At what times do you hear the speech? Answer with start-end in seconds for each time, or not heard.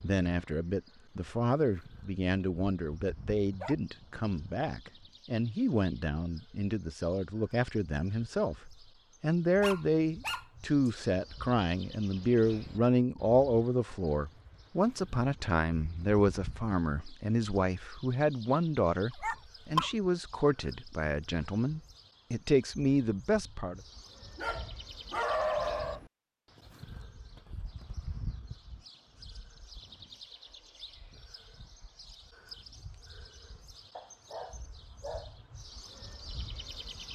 0.0-23.8.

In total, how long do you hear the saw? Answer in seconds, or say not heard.
not heard.